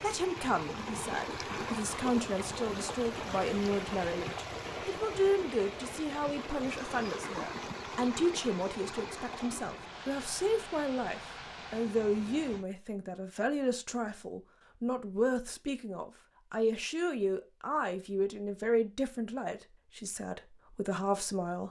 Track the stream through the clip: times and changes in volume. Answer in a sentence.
The stream can be heard from 0.0 to 12.7 s, getting quieter.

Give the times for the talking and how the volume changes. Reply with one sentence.
The talking can be heard from 0.0 to 21.6 s, at a steady volume.